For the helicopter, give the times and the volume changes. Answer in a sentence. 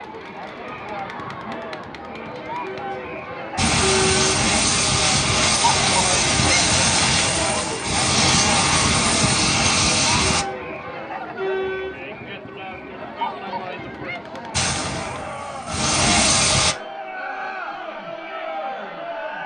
The helicopter can be heard from 3.5 to 10.4 s, at a steady volume; and briefly from 14.5 to 16.8 s.